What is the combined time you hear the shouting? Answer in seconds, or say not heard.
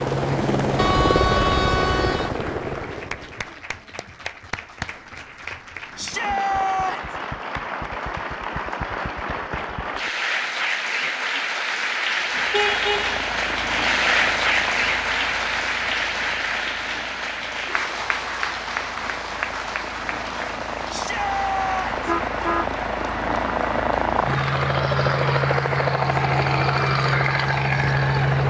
2 s.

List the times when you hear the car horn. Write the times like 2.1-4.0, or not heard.
0.8-2.3, 12.5-13.2, 21.9-22.7.